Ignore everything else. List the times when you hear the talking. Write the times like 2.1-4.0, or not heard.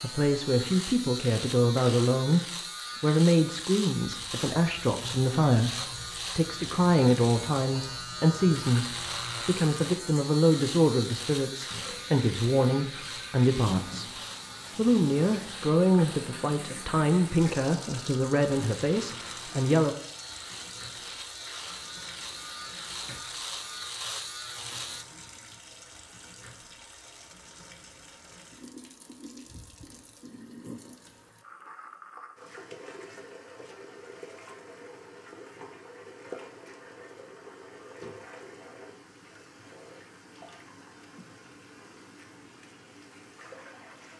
0.0-14.2, 14.8-19.9.